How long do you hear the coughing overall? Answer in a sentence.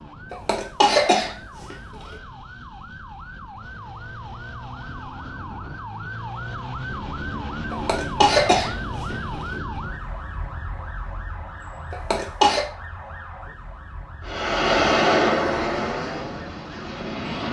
The coughing can be heard for 4 seconds in total.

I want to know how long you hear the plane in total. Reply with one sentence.
You can hear the plane for 3 seconds altogether.